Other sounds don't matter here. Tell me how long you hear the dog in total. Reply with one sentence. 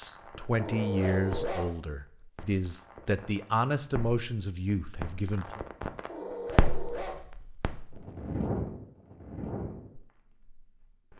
You can hear the dog for 2 seconds altogether.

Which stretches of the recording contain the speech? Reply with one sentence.
The speech can be heard from 0.0 to 5.6 s.